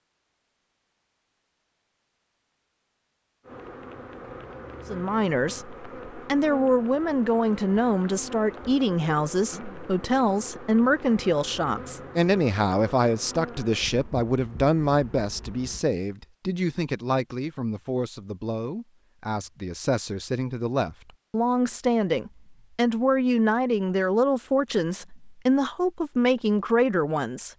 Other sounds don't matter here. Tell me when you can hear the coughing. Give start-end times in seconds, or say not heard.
not heard.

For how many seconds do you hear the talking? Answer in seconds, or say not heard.
23 s.